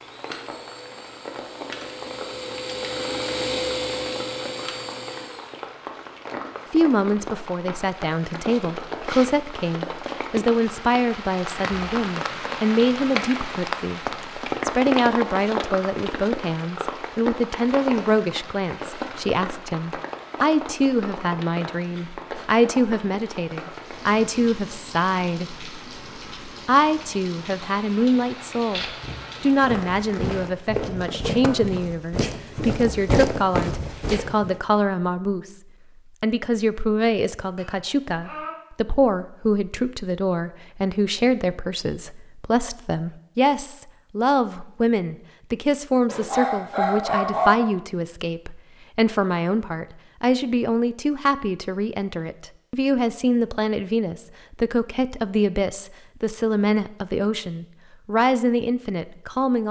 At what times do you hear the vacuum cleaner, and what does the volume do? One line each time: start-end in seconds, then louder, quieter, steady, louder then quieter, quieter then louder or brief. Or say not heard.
0.0-5.7 louder then quieter.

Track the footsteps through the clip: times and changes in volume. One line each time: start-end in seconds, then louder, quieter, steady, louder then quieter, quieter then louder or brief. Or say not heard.
28.6-34.6 louder.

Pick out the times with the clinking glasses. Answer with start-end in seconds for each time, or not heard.
37.4-38.5.